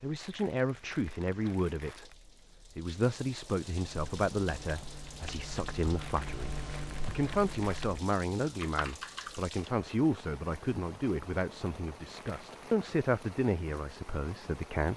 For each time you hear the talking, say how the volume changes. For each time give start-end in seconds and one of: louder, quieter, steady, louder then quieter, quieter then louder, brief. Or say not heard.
0.0-2.1 brief
2.8-14.9 steady.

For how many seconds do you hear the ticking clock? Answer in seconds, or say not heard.
not heard.